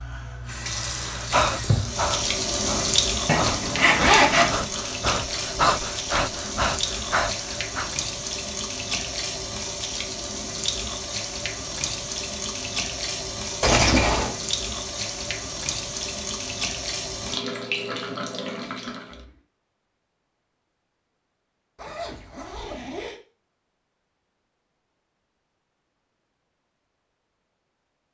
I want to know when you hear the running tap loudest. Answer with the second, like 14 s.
3 s.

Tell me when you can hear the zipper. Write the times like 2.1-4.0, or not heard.
3.2-4.5, 13.6-14.3, 21.8-23.2.